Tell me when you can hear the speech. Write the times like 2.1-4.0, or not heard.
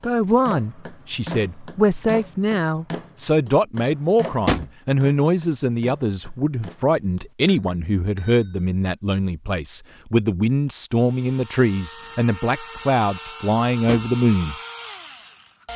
0.0-14.6.